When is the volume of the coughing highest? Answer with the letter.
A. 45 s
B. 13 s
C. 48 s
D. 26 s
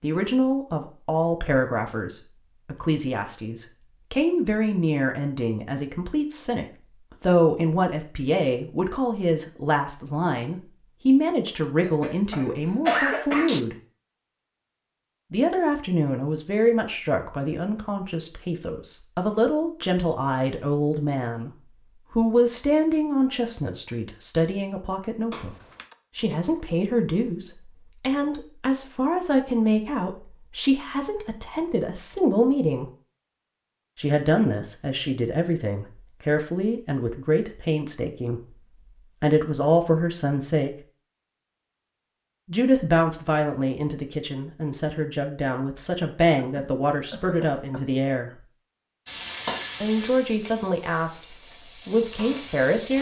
B.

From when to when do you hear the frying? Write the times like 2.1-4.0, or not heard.
49.0-52.9.